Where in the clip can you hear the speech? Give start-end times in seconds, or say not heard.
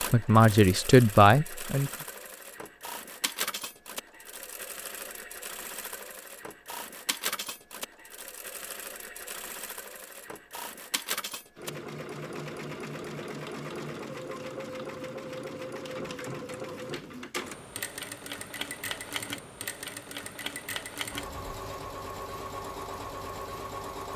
0.0-1.9.